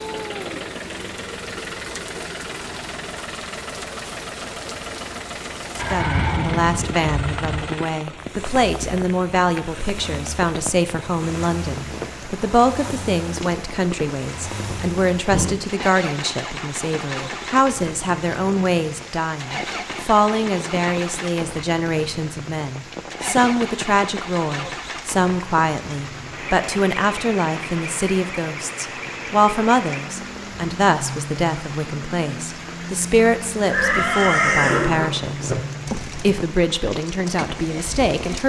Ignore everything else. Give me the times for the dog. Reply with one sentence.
The dog can't be heard in this clip.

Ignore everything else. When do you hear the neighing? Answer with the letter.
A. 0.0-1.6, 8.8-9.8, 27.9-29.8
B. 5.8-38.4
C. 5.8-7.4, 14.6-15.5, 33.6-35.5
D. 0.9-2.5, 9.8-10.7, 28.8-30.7
C.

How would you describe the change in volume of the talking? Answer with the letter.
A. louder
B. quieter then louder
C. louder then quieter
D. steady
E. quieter
D.